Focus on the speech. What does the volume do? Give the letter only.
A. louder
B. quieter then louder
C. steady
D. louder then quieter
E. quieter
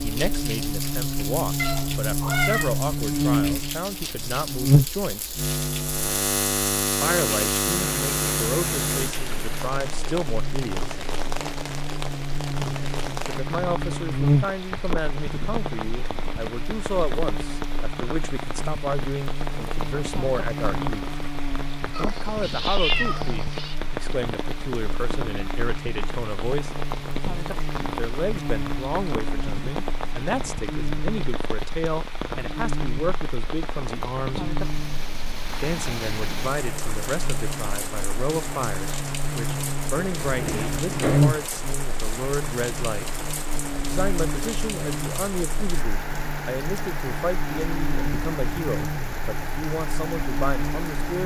C.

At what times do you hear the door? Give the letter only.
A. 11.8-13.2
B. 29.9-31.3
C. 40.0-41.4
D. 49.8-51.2
C.